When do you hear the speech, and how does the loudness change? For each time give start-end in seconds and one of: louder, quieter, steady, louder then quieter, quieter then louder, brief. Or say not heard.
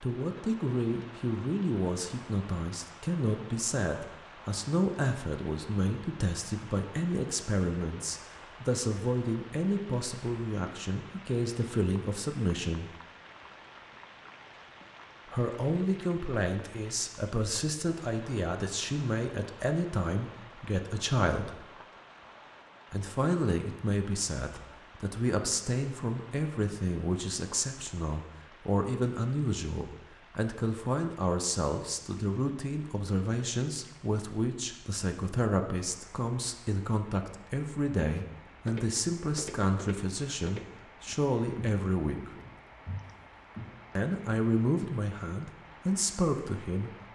0.0-12.9 steady
15.3-21.6 steady
22.9-42.3 steady
44.0-46.9 brief.